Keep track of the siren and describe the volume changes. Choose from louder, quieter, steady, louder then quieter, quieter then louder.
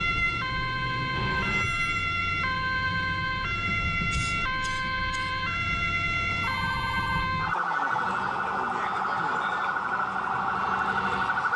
steady.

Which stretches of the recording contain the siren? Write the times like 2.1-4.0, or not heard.
0.0-11.5.